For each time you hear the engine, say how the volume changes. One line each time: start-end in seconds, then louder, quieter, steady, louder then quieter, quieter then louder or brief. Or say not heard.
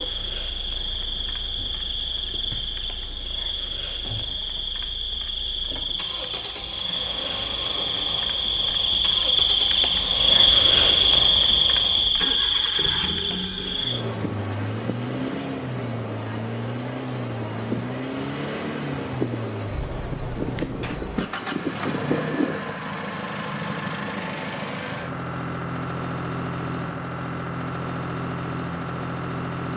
0.0-29.7 louder.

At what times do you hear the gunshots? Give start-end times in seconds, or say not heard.
not heard.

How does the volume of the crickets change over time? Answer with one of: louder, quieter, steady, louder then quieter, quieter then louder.
louder then quieter.